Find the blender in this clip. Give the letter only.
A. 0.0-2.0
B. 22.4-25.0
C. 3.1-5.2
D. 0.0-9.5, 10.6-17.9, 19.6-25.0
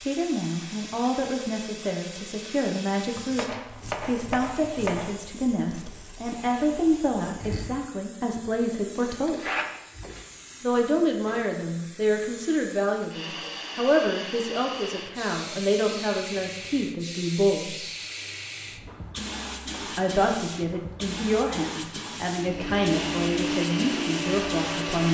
B.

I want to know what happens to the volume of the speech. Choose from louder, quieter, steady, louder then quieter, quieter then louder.
steady.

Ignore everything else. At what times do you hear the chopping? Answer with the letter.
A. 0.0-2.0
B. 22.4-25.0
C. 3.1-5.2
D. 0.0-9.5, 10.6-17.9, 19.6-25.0
C.